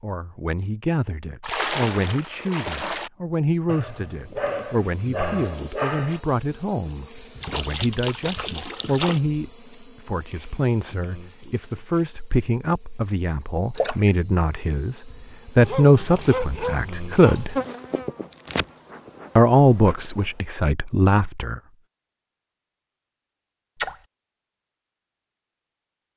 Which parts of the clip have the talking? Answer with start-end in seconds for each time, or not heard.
0.0-17.6, 19.4-21.6.